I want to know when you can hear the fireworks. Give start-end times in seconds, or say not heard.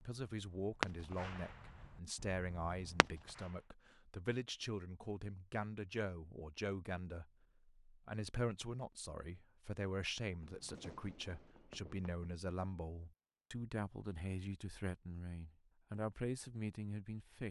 0.0-3.5, 10.2-12.3.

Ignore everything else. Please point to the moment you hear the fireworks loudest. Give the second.
1 s.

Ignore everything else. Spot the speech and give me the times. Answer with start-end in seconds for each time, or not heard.
0.0-17.4.